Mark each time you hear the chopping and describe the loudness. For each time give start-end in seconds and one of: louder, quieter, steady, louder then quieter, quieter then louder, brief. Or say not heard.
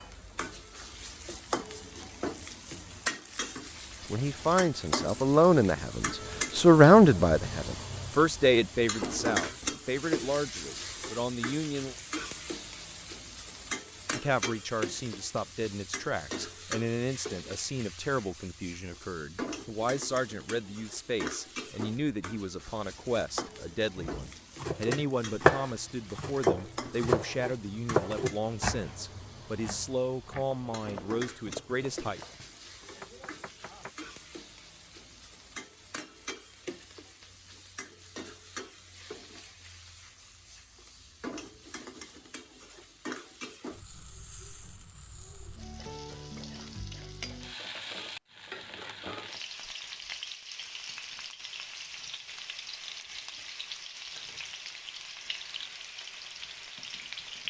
23.9-33.9 quieter.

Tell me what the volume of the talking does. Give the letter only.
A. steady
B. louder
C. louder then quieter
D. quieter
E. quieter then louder
D.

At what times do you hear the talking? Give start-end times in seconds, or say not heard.
4.0-11.9, 14.1-32.2.